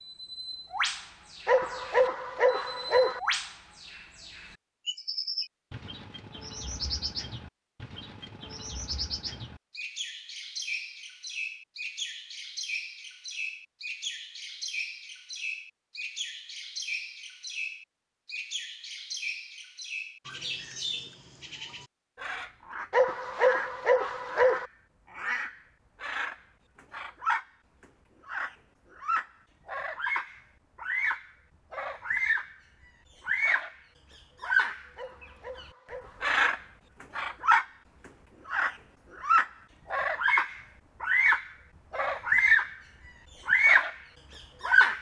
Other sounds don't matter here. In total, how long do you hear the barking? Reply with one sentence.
The barking can be heard for 5 seconds in total.